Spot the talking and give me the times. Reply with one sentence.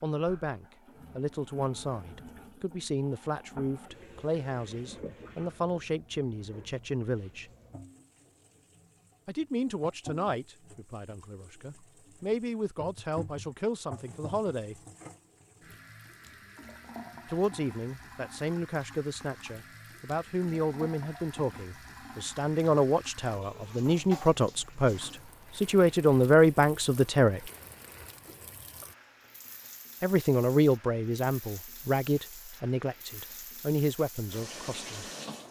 The talking can be heard from 0.0 to 7.5 s, from 9.2 to 14.8 s, from 17.2 to 27.4 s and from 30.0 to 35.1 s.